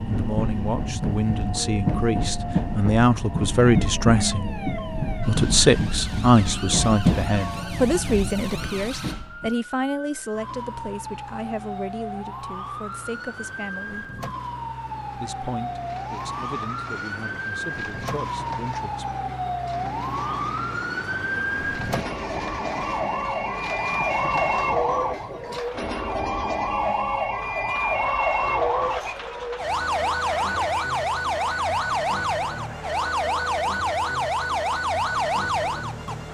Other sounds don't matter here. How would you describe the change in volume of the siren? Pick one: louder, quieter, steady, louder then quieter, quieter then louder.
louder.